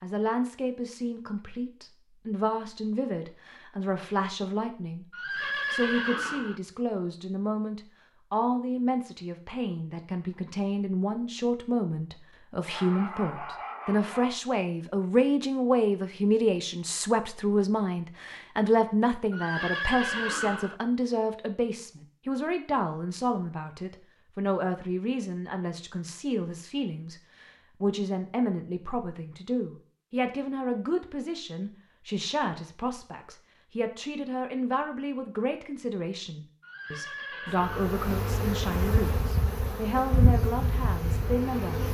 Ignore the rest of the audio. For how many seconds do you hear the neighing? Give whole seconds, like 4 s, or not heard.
4 s.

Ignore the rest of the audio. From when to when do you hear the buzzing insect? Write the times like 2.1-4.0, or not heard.
37.5-41.8.